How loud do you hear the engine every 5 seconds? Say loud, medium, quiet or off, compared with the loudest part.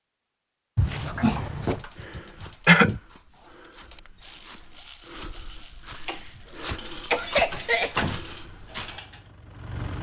off, loud.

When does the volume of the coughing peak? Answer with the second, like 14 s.
3 s.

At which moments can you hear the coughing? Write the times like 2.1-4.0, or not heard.
1.7-3.0, 6.0-8.0.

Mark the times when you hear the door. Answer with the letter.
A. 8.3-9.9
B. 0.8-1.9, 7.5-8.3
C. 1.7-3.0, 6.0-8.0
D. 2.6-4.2
B.